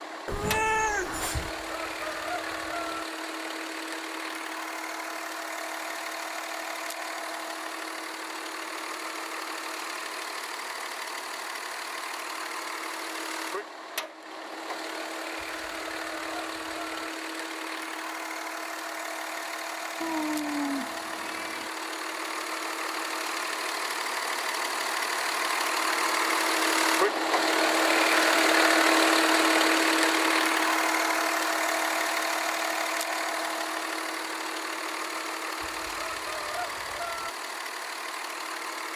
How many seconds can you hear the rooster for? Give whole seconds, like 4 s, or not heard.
5 s.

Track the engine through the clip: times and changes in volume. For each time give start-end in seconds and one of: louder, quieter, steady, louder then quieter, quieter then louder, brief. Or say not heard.
0.0-38.9 louder then quieter.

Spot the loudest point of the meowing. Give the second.
1 s.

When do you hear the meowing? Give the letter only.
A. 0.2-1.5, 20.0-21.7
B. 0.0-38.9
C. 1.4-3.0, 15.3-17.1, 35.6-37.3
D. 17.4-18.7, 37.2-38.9
A.